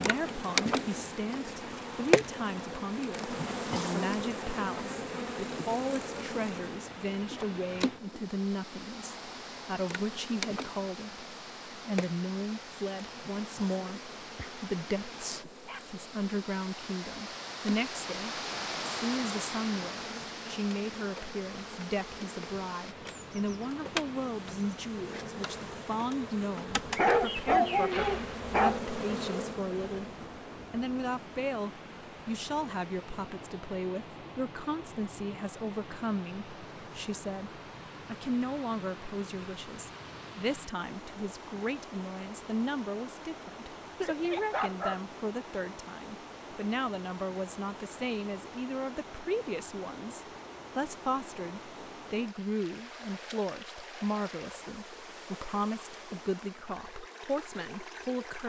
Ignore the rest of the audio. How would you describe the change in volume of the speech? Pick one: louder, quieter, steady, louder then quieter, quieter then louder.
steady.